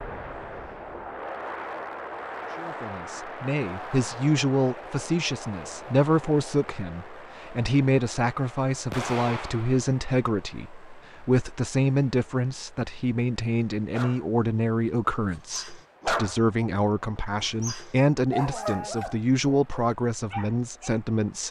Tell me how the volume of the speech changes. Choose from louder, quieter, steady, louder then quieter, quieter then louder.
steady.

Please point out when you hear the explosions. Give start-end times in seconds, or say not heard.
8.9-9.9.